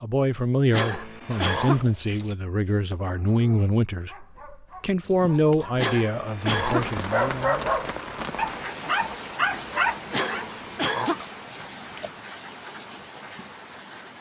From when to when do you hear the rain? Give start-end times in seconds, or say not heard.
6.3-14.1.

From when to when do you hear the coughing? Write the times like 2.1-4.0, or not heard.
0.7-1.9, 5.8-6.9, 10.1-11.2.